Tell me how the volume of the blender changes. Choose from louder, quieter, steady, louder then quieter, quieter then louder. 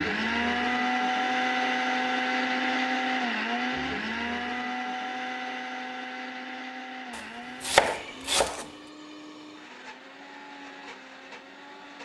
quieter.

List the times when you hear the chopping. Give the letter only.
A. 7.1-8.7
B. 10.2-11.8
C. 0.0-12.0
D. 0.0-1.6
A.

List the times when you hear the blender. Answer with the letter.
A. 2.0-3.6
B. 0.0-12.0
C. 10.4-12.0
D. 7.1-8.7
B.